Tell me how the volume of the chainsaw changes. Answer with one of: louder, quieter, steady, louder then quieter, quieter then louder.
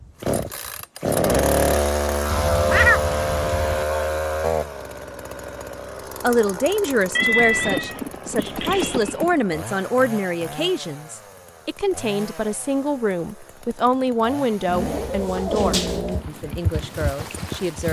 quieter.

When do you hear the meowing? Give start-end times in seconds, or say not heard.
2.3-3.9, 7.2-9.2, 14.7-16.2.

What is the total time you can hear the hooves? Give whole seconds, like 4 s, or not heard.
4 s.